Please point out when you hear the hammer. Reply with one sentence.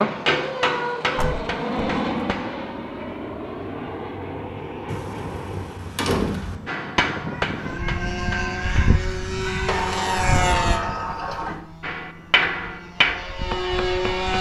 You can hear the hammer from 0.0 to 2.7 s, from 6.7 to 8.9 s and from 11.8 to 14.3 s.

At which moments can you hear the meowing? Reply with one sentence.
You can hear the meowing from 0.3 to 1.4 s and from 7.2 to 9.7 s.